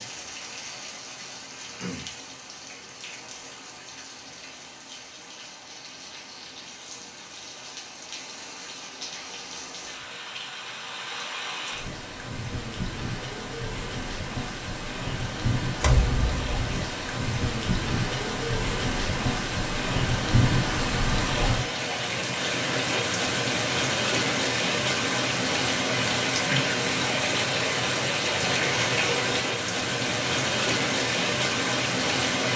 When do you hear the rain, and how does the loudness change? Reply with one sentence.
The rain can be heard from 0.0 to 32.5 s, getting louder.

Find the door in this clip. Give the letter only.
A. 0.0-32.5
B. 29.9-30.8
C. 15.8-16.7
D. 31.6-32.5
C.